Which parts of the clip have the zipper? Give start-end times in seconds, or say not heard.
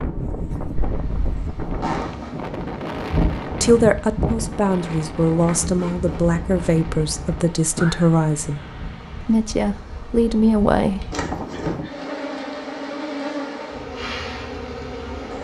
1.8-2.5, 5.2-6.4, 11.1-11.8.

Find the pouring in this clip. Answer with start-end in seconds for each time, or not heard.
not heard.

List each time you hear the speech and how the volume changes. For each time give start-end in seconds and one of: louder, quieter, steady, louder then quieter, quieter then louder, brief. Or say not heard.
3.5-8.6 steady
9.2-11.0 brief.